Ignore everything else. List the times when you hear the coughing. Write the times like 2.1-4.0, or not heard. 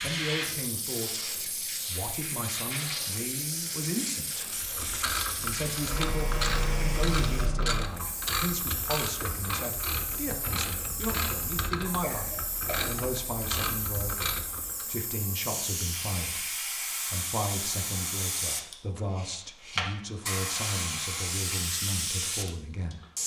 12.0-12.9.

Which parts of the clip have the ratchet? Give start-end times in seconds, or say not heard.
4.5-14.8.